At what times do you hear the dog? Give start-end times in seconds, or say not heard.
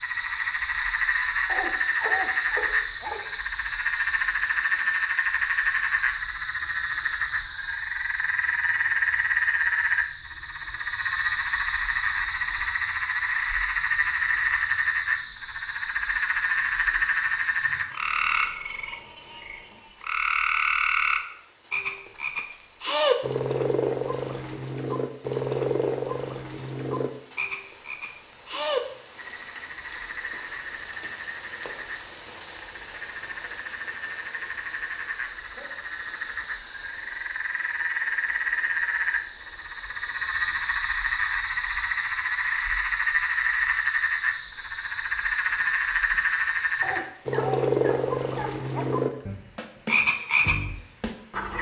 1.4-3.2, 46.8-48.9.